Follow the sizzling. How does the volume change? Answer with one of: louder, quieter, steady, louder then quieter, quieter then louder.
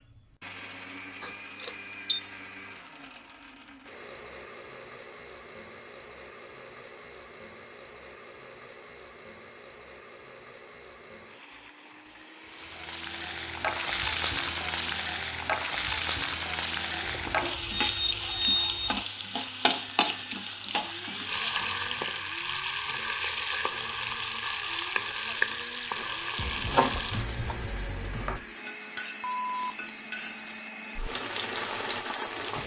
quieter.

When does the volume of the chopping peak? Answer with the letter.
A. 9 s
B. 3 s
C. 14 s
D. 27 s
D.